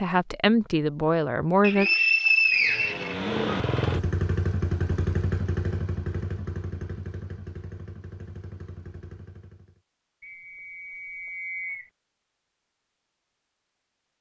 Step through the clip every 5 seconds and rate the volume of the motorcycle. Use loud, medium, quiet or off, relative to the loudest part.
loud, medium, off.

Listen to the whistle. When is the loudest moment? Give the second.
2 s.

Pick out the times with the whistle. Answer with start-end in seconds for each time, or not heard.
1.6-3.1, 10.2-11.9.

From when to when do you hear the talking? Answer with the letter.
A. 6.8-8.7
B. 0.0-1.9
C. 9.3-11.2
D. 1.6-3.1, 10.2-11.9
B.